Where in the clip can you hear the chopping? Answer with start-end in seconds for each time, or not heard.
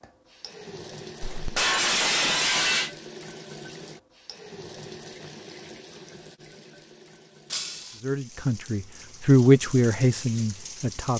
not heard.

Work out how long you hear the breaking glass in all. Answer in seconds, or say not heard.
2 s.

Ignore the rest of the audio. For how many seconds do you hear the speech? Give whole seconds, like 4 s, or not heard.
3 s.